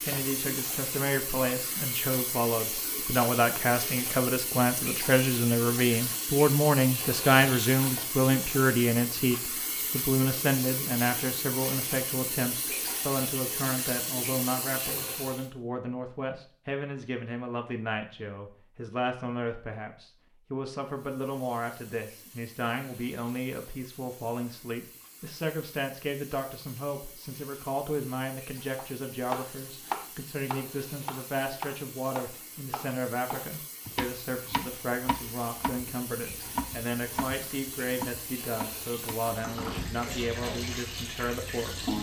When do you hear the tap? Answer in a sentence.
You can hear the tap from 0.0 to 15.5 s and from 20.8 to 41.9 s.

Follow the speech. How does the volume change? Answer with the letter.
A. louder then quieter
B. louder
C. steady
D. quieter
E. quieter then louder
D.